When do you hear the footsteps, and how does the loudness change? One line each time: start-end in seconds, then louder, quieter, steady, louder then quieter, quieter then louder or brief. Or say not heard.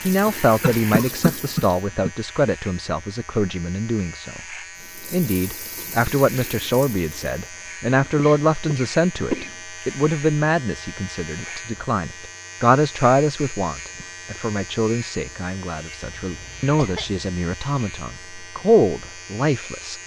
not heard.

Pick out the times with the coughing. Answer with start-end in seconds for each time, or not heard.
0.6-2.1, 8.0-9.6, 16.0-17.2.